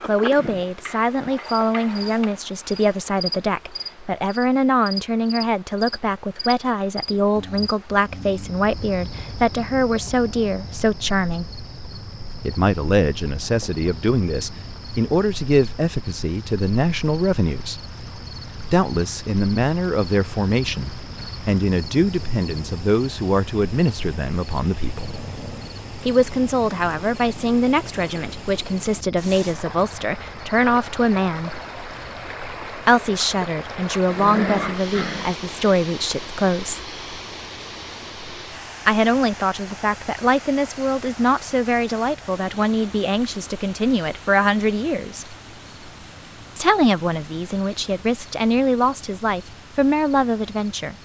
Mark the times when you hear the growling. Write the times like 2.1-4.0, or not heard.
7.3-8.7, 25.0-25.8, 34.0-35.5.